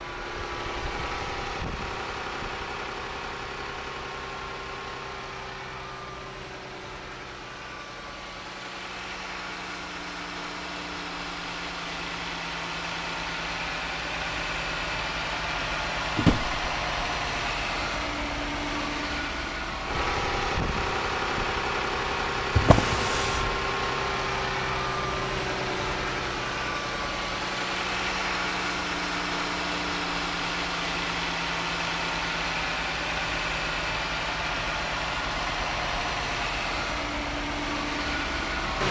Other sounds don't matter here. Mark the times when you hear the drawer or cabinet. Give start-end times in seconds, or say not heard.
16.1-16.6, 22.6-23.6.